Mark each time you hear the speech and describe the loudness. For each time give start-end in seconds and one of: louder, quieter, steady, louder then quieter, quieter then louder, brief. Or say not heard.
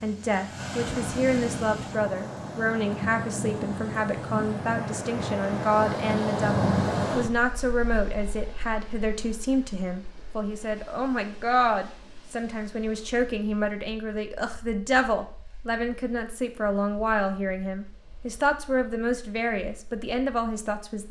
0.0-21.0 steady.